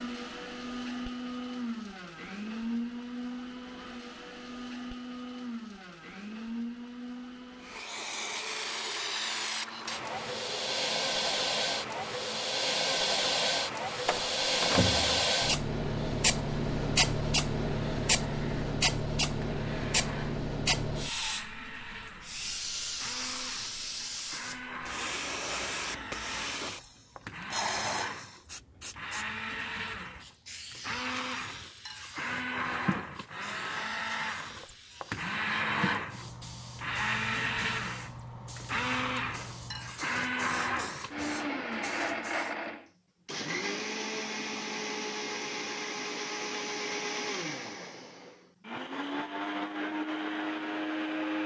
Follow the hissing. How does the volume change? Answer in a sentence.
The loudness of the hissing goes down.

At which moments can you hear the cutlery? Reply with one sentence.
The cutlery can't be heard in this clip.